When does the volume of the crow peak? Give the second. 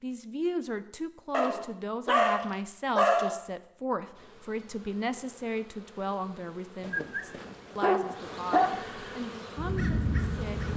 10 s.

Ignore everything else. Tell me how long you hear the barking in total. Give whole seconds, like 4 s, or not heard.
4 s.